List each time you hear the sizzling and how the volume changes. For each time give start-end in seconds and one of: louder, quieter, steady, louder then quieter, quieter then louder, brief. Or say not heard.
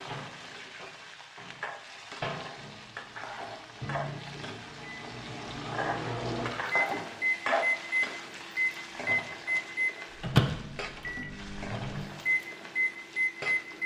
0.0-13.8 louder then quieter.